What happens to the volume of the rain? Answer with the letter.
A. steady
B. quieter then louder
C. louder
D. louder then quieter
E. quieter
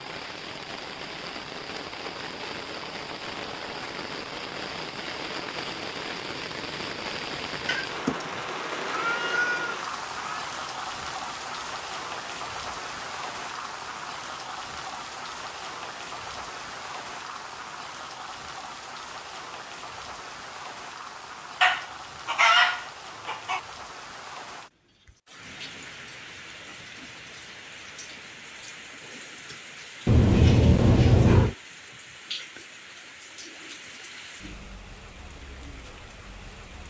E.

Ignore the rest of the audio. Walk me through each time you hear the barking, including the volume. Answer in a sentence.
The barking can't be heard in this clip.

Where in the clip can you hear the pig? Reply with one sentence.
The pig can't be heard in this clip.